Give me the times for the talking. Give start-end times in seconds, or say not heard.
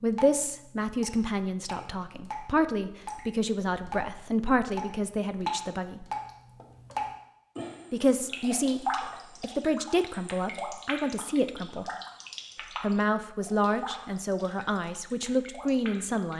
0.0-6.0, 7.9-11.8, 12.8-16.3.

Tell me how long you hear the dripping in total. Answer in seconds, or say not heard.
16 s.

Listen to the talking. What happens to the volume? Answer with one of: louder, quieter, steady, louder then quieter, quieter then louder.
steady.